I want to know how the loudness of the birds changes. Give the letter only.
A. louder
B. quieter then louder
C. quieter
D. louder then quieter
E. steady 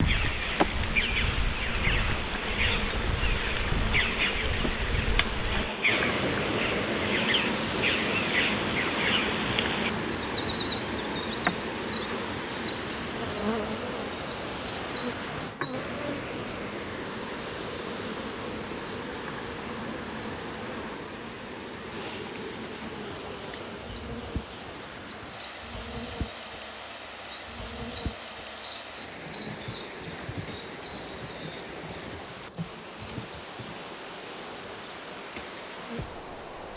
A.